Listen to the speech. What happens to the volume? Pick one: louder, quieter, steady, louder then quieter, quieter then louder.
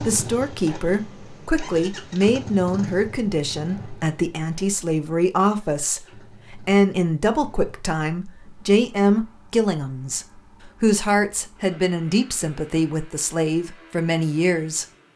steady.